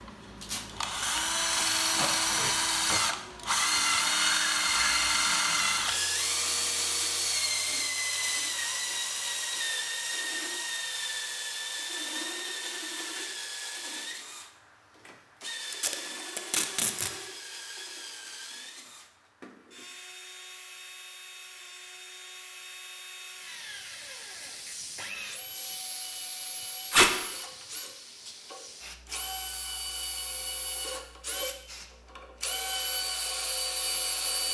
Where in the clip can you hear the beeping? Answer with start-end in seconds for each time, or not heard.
not heard.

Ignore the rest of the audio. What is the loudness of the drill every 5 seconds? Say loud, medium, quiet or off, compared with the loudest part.
loud, loud, medium, quiet, quiet, quiet, medium.